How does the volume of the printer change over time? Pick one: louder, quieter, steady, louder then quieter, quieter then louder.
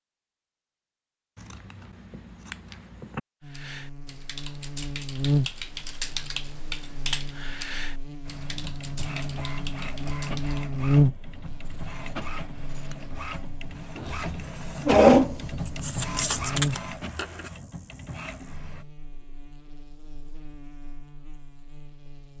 louder then quieter.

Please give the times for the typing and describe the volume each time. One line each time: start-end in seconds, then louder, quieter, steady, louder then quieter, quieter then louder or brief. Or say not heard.
3.5-10.7 louder then quieter.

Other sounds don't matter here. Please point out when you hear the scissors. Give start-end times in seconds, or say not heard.
1.4-3.2, 11.6-13.2, 15.7-17.5.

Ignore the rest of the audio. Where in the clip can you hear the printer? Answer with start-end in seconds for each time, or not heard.
8.2-18.9.